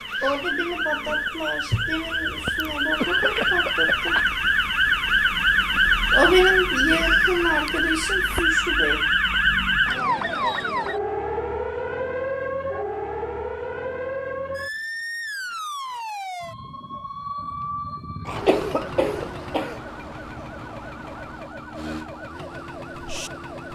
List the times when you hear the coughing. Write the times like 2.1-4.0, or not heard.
3.0-4.3, 18.4-19.8.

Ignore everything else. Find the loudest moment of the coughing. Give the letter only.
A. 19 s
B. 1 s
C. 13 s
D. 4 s
A.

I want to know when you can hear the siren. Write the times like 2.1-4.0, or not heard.
0.0-23.6.